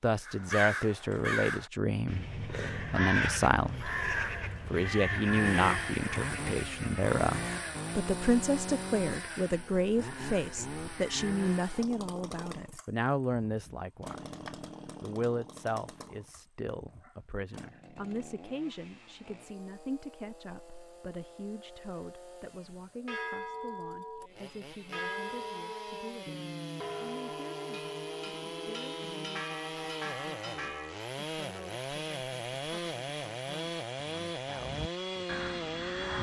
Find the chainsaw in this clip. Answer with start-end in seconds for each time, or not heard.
5.2-36.1.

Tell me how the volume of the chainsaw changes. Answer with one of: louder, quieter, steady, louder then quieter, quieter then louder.
quieter then louder.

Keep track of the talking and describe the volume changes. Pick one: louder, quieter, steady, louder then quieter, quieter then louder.
quieter.